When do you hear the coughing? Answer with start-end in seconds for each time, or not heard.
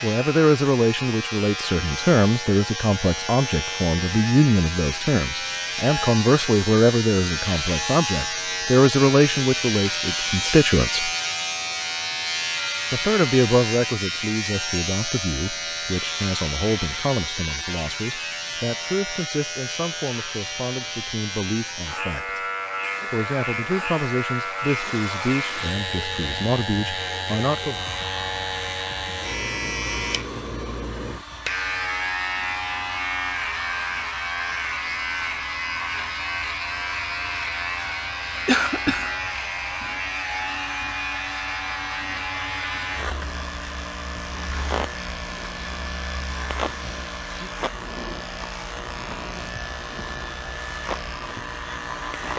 38.5-39.1.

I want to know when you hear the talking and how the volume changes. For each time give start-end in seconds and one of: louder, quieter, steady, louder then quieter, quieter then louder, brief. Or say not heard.
0.0-11.1 steady
12.9-22.4 quieter
23.1-27.9 steady.